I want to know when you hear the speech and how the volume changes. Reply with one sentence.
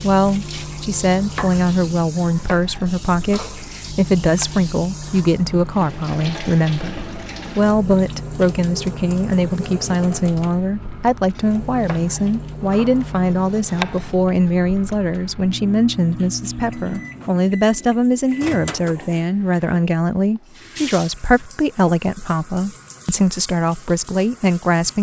You can hear the speech from 0.0 to 24.9 s, at a steady volume.